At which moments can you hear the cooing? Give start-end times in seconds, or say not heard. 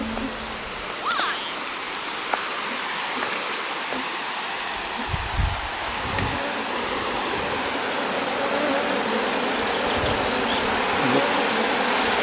not heard.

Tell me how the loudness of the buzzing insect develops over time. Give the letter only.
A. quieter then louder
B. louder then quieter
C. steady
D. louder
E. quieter
D.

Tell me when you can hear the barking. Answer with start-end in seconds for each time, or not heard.
not heard.